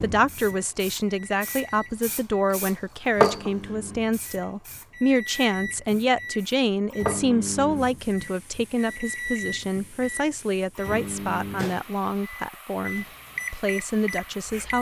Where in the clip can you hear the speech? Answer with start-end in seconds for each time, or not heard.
0.0-14.7.